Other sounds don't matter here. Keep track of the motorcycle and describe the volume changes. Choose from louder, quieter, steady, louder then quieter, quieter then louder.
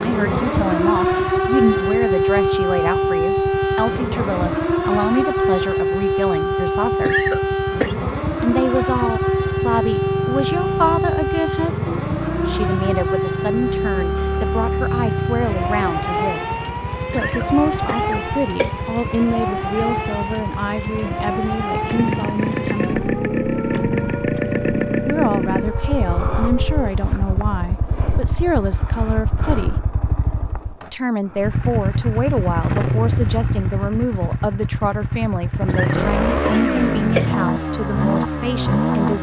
louder.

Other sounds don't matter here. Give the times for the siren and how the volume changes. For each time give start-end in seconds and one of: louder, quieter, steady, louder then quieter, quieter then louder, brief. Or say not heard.
0.0-26.9 quieter.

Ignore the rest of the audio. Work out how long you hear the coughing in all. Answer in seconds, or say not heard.
4 s.